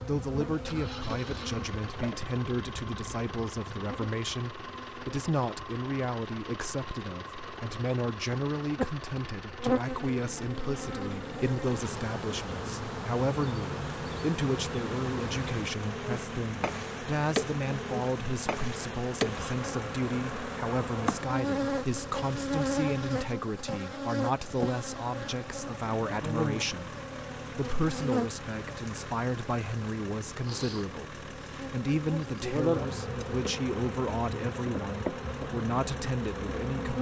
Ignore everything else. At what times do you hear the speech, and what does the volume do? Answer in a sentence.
The speech can be heard from 0.0 to 36.9 s, at a steady volume.